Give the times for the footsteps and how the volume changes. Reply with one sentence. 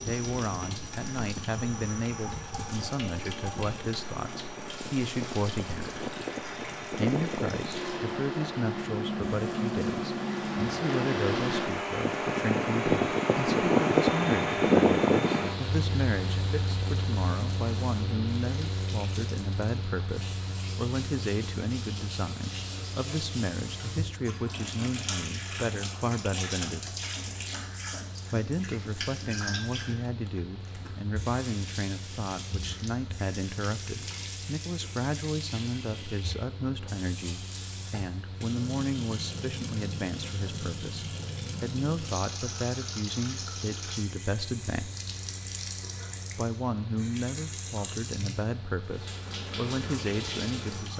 The footsteps can't be heard in this clip.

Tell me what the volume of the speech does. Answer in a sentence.
The loudness of the speech stays about the same.